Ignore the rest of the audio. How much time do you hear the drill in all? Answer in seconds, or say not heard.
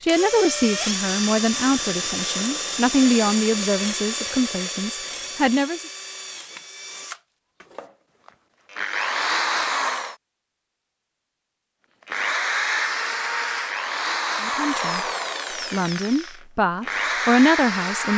16 s.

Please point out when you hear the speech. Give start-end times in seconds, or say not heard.
0.0-5.8, 14.4-15.0, 15.7-18.1.